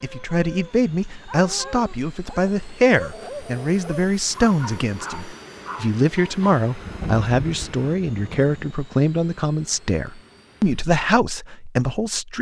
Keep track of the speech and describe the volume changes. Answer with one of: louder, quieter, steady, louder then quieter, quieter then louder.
steady.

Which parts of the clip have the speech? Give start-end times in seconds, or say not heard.
0.0-12.3.